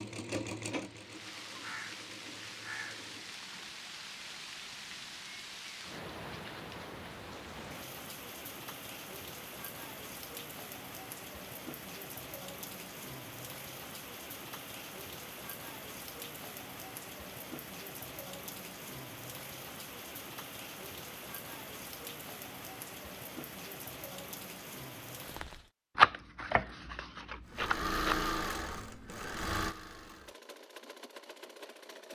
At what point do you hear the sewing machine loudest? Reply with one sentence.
The volume of the sewing machine peaks at 28 seconds.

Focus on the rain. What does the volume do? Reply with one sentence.
The volume of the rain stays about the same.